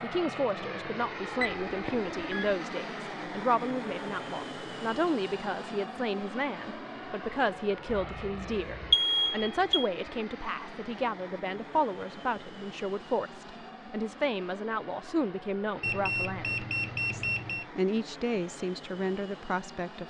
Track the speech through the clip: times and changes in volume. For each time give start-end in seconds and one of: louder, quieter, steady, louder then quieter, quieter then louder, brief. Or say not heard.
0.0-20.0 steady.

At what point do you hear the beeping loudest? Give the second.
9 s.